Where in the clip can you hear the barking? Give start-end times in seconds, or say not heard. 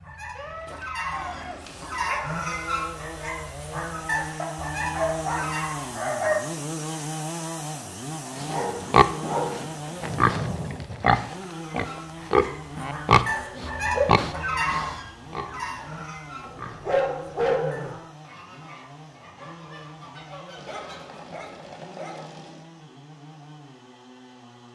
0.3-2.2, 4.3-6.4, 8.4-9.7, 13.5-14.1, 16.4-18.0, 20.6-22.6.